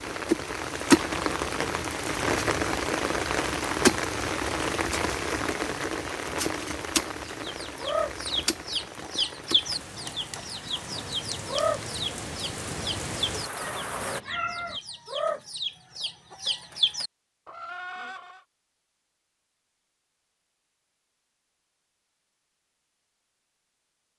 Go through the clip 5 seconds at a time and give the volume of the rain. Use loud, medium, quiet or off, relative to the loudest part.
loud, medium, medium, off, off.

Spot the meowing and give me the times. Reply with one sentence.
The meowing can be heard from 13.6 to 14.8 s.